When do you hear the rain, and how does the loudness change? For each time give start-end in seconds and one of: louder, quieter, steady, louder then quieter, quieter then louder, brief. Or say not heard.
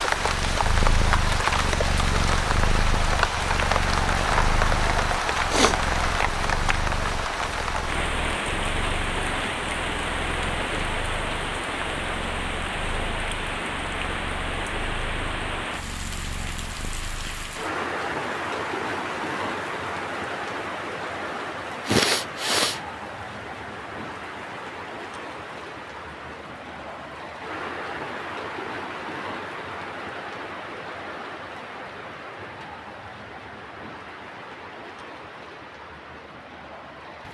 0.0-37.2 quieter.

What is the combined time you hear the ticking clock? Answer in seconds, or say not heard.
not heard.